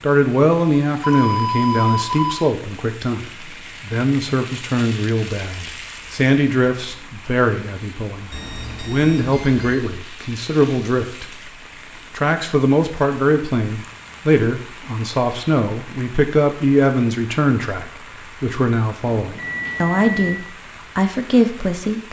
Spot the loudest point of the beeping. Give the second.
2 s.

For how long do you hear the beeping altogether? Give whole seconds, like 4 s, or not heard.
4 s.